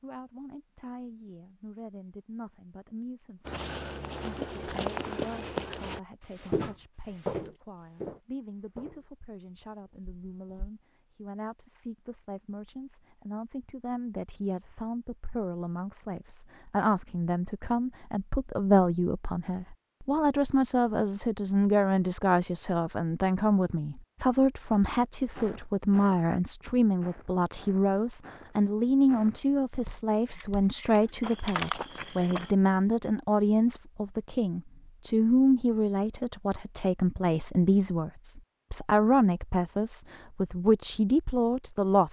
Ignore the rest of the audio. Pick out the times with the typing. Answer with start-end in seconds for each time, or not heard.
30.3-31.8.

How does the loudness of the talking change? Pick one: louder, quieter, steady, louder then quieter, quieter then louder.
louder.